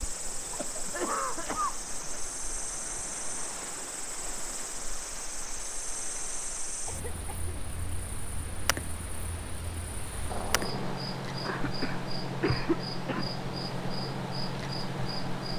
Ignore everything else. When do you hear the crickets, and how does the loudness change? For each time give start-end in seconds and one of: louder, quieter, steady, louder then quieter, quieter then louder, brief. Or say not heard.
0.0-15.5 louder.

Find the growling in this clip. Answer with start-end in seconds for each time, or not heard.
10.3-11.0.